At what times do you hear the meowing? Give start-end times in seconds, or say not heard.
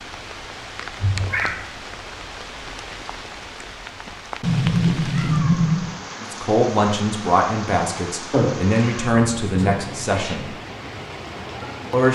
1.0-1.6, 4.4-6.0, 8.3-10.3.